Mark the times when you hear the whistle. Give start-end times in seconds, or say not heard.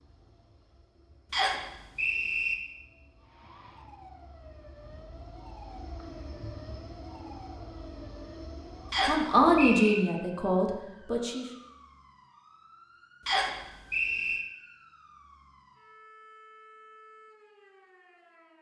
1.3-2.5, 8.9-10.1, 13.2-14.4.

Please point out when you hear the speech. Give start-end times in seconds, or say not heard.
9.1-11.4.